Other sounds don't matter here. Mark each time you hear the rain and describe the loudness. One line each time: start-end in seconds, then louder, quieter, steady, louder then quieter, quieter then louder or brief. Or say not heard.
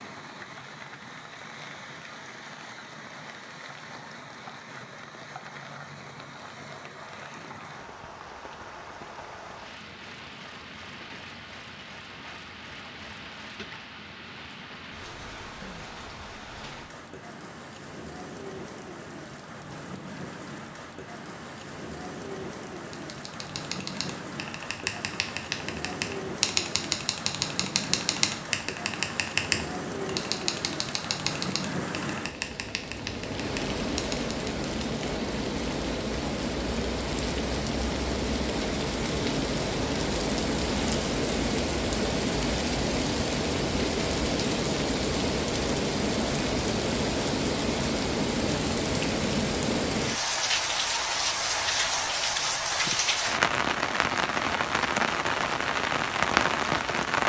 0.0-57.2 louder.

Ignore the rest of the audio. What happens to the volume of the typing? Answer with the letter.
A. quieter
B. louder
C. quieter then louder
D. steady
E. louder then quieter
E.